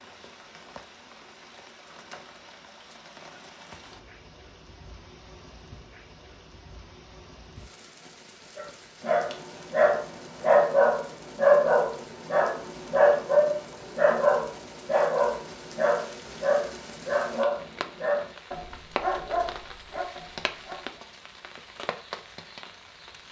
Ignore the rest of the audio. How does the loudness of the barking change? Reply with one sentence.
The loudness of the barking goes down.